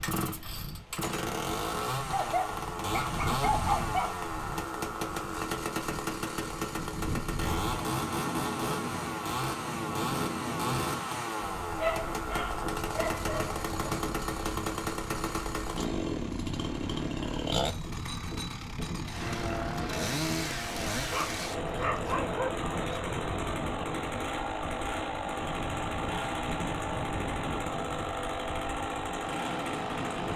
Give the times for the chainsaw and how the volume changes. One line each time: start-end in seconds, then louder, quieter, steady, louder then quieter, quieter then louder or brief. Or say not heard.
0.0-30.3 steady.